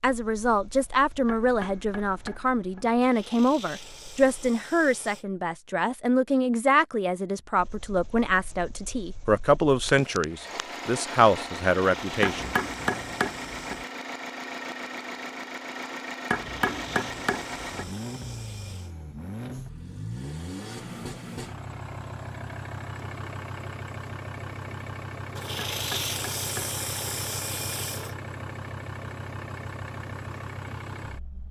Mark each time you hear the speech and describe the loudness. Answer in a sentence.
You can hear the speech from 0.0 to 12.5 s, at a steady volume.